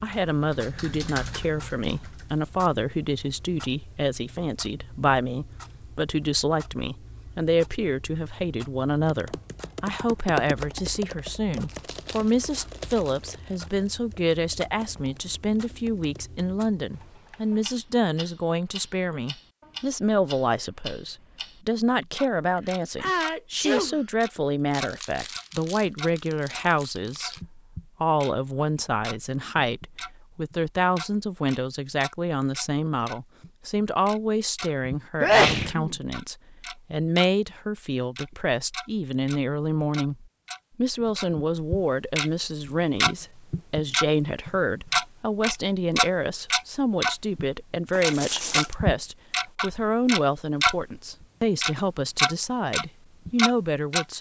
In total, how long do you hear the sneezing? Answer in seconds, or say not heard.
2 s.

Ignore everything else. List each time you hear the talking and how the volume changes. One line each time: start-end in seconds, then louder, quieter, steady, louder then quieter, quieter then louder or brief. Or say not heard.
0.0-54.1 steady.